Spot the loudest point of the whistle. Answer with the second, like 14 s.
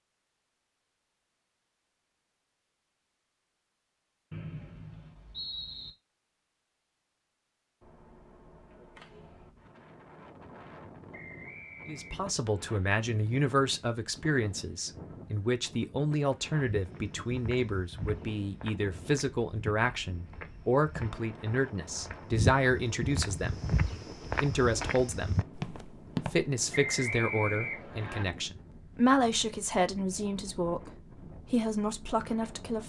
27 s.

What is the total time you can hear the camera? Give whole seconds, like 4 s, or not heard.
2 s.